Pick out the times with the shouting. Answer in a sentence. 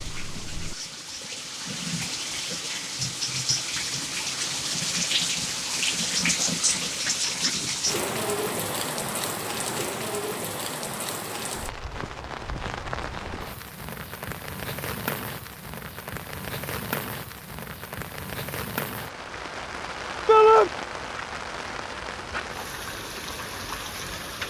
The shouting can be heard from 20.2 to 20.7 s.